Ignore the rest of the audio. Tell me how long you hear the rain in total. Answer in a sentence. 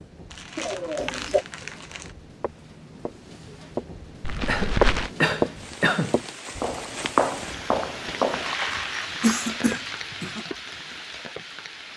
The rain can be heard for 12 seconds in total.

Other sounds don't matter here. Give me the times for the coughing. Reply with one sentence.
You can hear the coughing from 0.6 to 1.4 s, from 4.5 to 6.2 s and from 9.2 to 10.4 s.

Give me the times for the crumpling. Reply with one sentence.
The crumpling can be heard from 0.3 to 2.1 s, from 4.2 to 5.1 s and from 8.3 to 10.1 s.